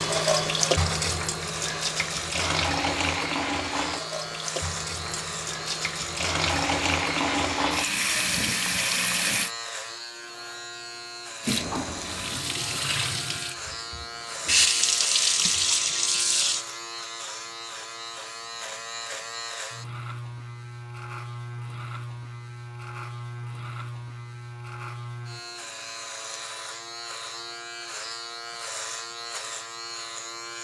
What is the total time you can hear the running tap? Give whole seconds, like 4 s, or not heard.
15 s.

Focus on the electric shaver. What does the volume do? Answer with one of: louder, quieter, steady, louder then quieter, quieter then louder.
steady.